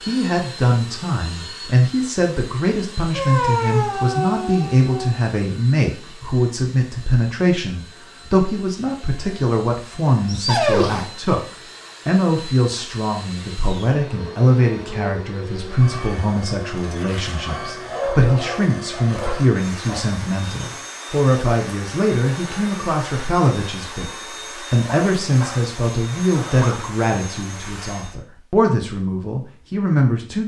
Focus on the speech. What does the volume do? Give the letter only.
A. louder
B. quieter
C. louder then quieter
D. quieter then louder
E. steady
E.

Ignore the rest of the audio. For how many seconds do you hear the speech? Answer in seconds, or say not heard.
30 s.